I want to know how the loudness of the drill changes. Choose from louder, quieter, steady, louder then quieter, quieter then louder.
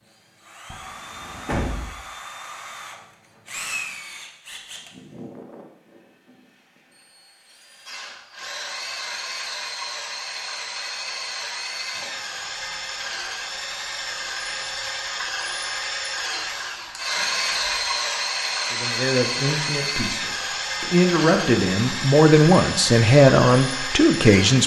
louder.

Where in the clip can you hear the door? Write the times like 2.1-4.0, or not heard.
0.7-1.9, 11.9-12.4, 17.1-17.9.